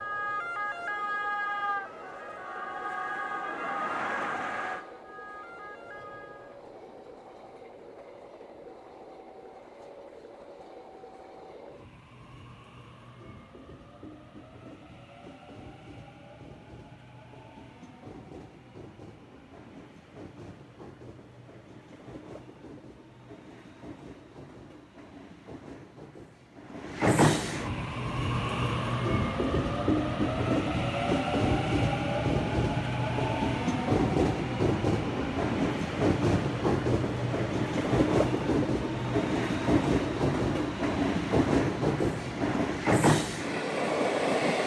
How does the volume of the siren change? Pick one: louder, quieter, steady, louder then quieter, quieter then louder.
quieter.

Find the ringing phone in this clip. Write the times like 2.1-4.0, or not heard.
not heard.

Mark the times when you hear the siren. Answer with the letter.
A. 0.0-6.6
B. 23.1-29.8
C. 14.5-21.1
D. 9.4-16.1
A.